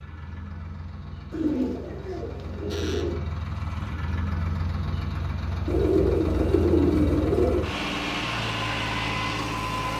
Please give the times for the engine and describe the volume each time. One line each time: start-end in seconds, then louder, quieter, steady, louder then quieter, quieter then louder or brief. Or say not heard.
0.0-9.9 louder.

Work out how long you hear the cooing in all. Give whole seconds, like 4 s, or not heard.
4 s.